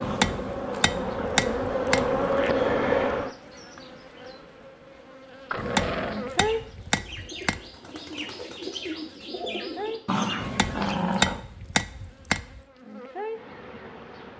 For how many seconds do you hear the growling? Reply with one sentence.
You can hear the growling for 5 seconds altogether.